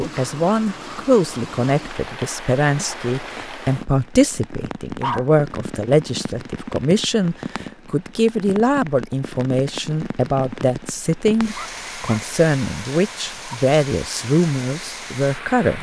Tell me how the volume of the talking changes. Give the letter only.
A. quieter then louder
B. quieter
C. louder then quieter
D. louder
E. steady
E.